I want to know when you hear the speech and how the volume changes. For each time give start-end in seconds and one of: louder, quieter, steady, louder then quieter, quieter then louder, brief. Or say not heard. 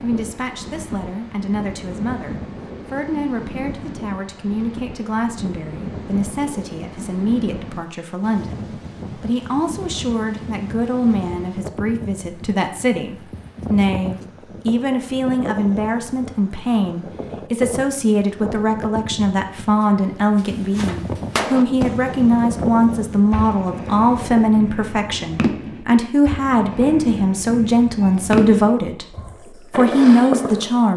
0.0-29.1 louder
29.8-30.9 brief.